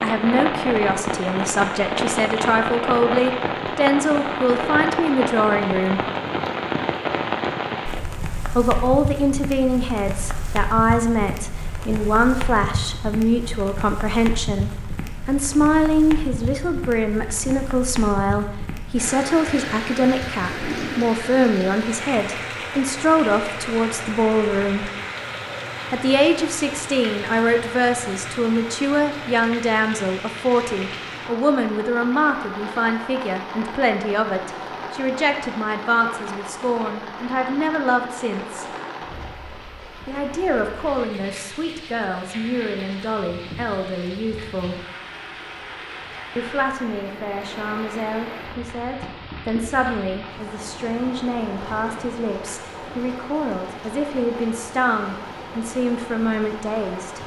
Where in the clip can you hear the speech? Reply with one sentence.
You can hear the speech from 0.0 to 6.0 s, from 8.6 to 24.9 s, from 25.9 to 38.6 s, from 40.0 to 44.8 s and from 46.4 to 57.2 s.